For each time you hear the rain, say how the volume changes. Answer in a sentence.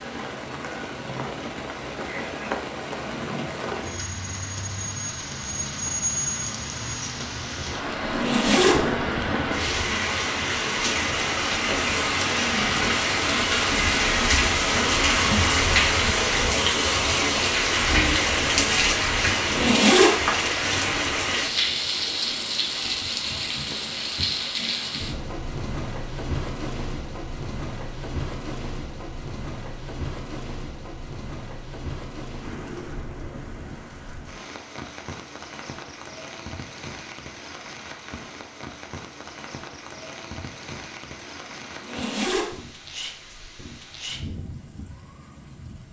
You can hear the rain from 0.0 to 45.8 s, getting louder then quieter.